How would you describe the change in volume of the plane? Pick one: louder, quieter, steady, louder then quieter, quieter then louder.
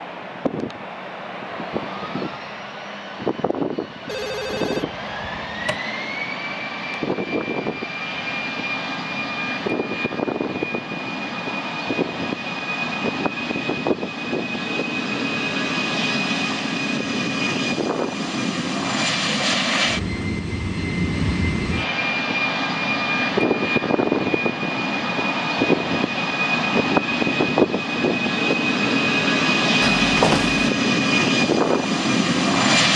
louder.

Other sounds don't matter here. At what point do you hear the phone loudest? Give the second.
30 s.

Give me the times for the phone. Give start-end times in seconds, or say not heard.
4.0-5.8, 29.9-30.6.